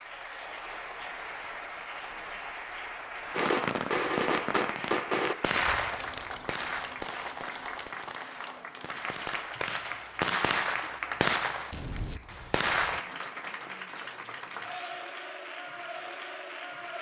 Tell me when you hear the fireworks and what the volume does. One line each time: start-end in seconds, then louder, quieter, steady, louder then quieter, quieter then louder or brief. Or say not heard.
3.3-13.1 quieter then louder.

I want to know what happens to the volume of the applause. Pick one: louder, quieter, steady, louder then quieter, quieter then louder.
steady.